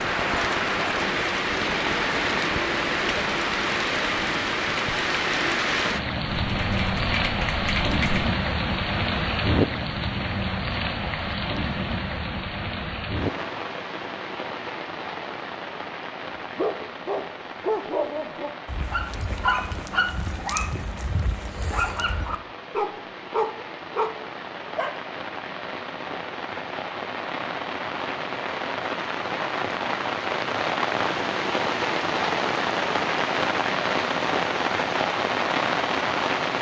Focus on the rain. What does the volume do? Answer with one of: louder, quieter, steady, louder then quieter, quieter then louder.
quieter then louder.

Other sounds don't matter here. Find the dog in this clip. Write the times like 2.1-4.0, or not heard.
16.4-24.9.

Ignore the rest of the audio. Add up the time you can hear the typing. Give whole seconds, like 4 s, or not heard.
2 s.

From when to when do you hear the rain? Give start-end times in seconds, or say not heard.
0.0-36.5.